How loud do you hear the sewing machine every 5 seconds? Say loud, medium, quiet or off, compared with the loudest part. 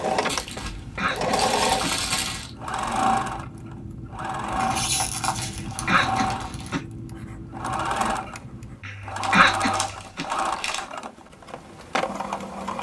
loud, loud, medium.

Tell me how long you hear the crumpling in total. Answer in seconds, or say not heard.
6 s.